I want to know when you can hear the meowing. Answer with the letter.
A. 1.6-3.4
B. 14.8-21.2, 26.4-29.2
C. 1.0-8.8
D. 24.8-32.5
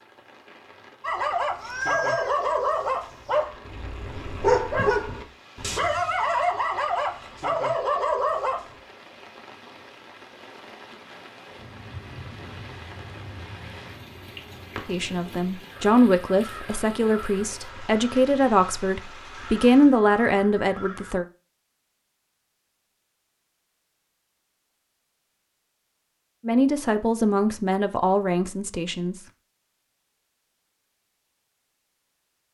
A.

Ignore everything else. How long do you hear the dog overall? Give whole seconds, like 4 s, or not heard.
8 s.